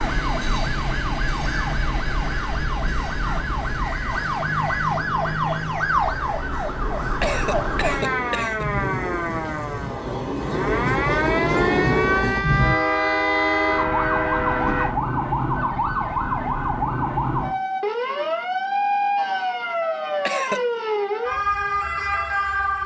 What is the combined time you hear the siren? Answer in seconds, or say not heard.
23 s.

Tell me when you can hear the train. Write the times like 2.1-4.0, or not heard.
0.0-14.9.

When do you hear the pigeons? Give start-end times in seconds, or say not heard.
not heard.